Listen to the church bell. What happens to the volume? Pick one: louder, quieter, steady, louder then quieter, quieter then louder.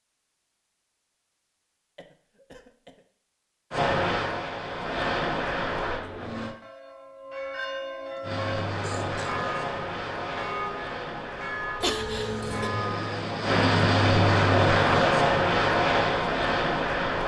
steady.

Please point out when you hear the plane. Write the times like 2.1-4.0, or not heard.
3.7-6.5, 8.2-17.2.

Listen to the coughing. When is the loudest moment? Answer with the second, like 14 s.
12 s.